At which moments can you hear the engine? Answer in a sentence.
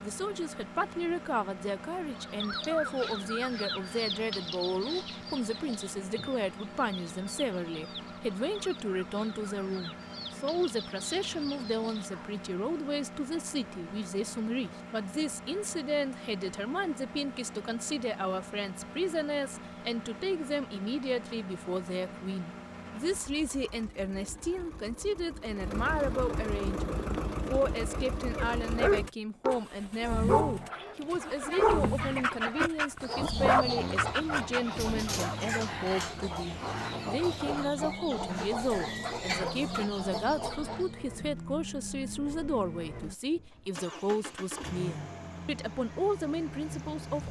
You can hear the engine from 0.0 to 47.2 s.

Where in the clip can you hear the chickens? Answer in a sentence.
The chickens can be heard from 2.1 to 12.2 s and from 30.6 to 40.9 s.